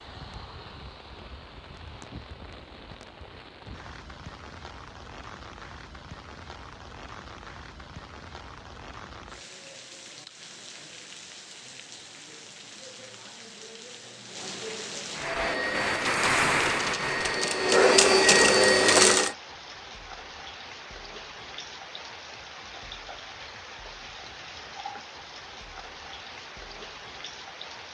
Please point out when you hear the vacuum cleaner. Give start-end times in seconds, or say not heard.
15.2-19.4.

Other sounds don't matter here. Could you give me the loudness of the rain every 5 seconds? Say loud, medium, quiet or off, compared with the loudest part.
quiet, quiet, quiet, loud, quiet, quiet.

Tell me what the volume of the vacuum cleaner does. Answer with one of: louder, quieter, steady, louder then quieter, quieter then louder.
louder.